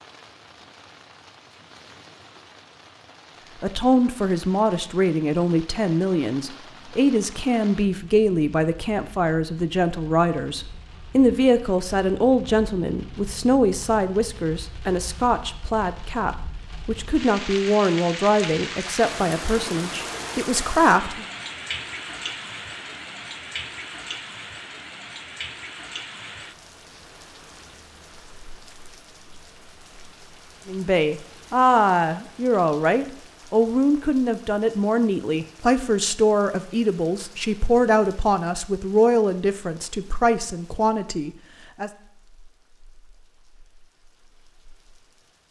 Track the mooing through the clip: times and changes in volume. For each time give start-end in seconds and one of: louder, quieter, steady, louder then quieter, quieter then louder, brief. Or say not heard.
not heard.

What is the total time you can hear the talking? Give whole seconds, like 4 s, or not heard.
29 s.